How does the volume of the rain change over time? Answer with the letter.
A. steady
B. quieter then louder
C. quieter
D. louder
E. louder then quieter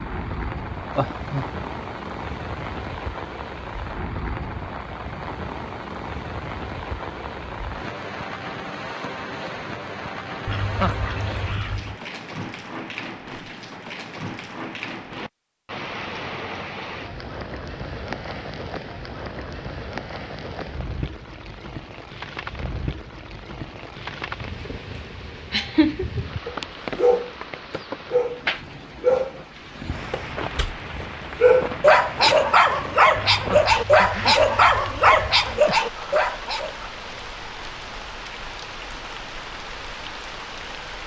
A.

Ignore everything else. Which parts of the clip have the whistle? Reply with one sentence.
The whistle can't be heard in this clip.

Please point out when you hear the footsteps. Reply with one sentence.
The footsteps can't be heard in this clip.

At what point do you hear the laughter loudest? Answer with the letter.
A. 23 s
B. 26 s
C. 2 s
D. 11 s
B.